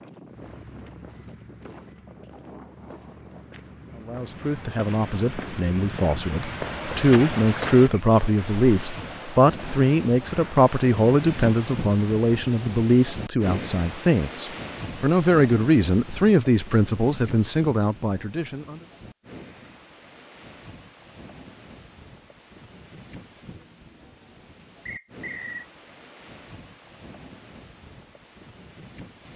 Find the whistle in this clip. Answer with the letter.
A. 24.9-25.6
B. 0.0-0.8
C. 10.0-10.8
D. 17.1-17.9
A.